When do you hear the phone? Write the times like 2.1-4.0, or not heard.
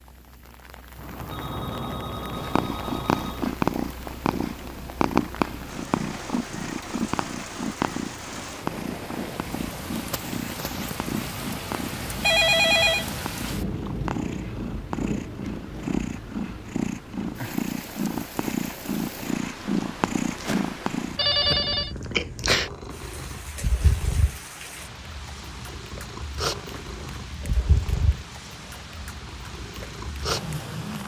0.9-3.5, 12.2-13.1, 21.1-21.9.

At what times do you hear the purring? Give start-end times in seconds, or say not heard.
2.3-31.0.